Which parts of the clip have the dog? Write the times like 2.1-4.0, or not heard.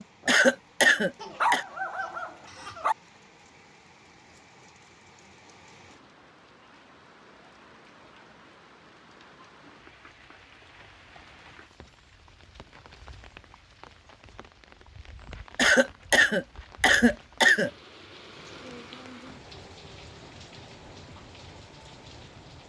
1.2-3.0.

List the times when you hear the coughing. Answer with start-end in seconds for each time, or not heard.
0.2-1.6, 15.6-17.7.